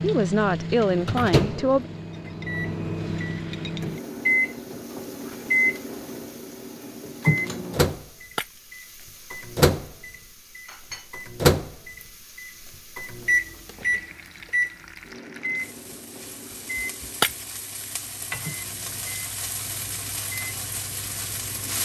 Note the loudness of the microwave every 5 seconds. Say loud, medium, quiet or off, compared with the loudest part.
loud, loud, loud, quiet, quiet.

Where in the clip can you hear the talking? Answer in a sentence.
The talking can be heard from 0.0 to 1.9 s.